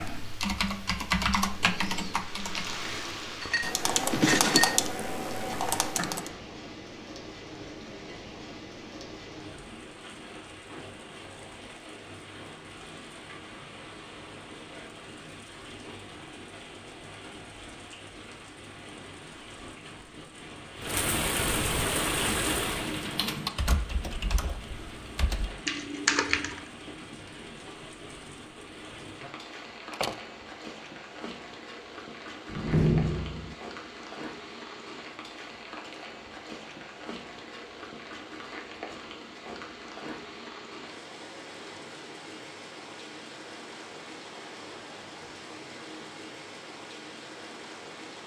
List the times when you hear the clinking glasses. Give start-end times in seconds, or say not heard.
3.4-4.8.